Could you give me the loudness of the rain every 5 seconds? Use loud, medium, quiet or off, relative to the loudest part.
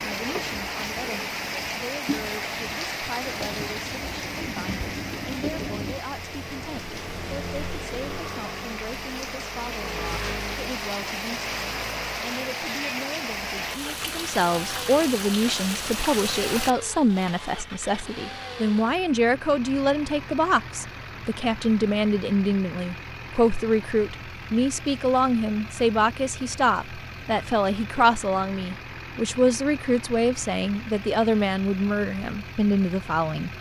loud, medium, loud, loud, off, off, off.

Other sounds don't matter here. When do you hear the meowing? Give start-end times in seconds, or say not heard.
not heard.